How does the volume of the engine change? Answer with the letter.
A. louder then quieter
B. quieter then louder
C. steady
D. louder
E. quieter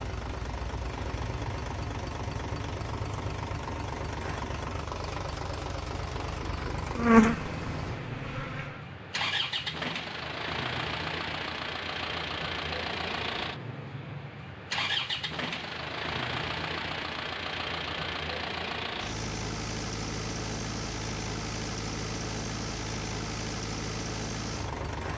C.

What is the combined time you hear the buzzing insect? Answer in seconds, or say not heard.
2 s.